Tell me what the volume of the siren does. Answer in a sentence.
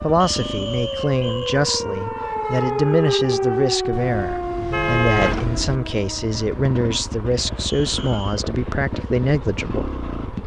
The volume of the siren goes up, then down.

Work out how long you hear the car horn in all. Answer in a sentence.
The car horn can be heard for 2 seconds in total.